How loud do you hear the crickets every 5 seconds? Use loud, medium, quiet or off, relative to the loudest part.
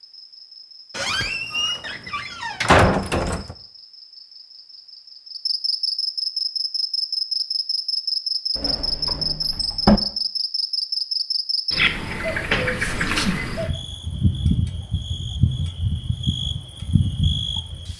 quiet, loud, loud, loud.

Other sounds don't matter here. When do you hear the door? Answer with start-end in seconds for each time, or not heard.
0.9-3.5, 8.6-10.0, 12.3-12.9.